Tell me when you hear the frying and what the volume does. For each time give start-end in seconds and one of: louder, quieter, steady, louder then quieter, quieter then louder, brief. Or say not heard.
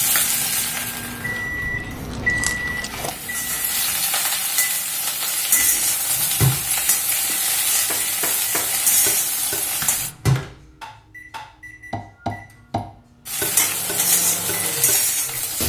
0.0-10.1 louder
13.2-15.6 brief.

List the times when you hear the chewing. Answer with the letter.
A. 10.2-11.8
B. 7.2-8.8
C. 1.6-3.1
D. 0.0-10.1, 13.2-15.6
C.